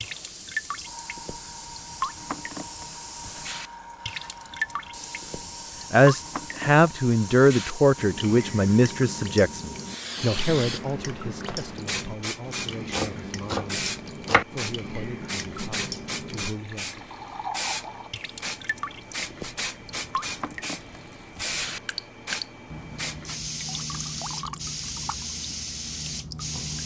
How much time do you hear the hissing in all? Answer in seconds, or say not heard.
27 s.